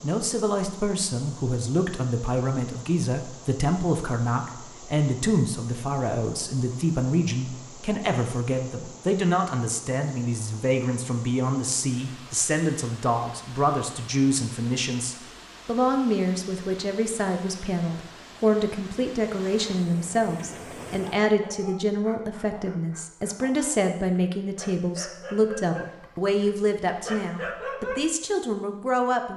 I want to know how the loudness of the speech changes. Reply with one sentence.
The loudness of the speech stays about the same.